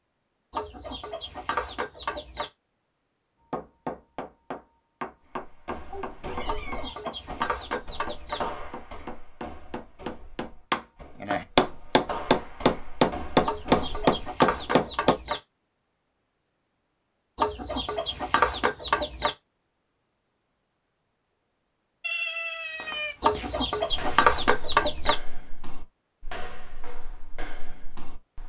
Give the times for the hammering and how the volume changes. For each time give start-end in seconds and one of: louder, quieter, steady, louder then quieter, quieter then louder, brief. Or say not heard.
3.5-15.2 louder.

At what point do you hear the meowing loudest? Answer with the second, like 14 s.
22 s.